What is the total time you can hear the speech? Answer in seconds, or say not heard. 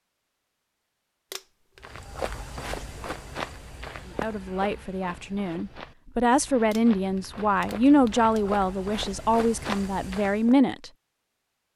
7 s.